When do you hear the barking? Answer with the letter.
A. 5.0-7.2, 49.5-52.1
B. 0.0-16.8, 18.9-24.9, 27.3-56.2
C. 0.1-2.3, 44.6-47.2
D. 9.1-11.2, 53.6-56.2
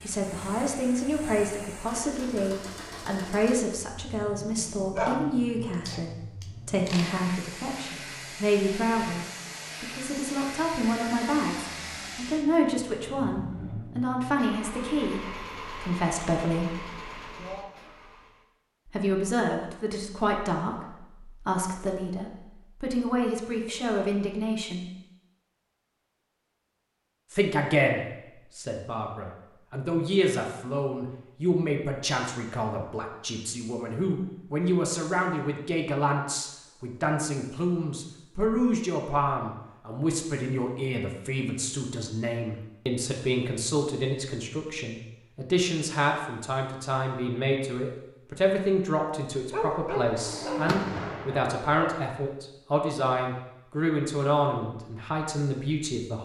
A.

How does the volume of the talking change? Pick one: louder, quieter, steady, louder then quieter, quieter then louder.
steady.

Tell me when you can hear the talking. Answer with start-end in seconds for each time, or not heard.
0.0-16.8, 18.9-24.9, 27.3-56.2.